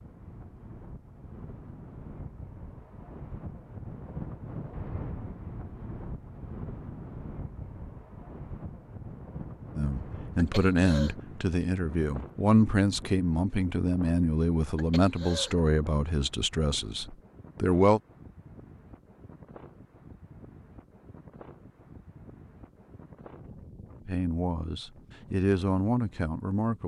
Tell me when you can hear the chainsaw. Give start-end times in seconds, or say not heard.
not heard.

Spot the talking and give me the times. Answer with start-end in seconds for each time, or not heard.
9.8-18.0, 24.1-26.8.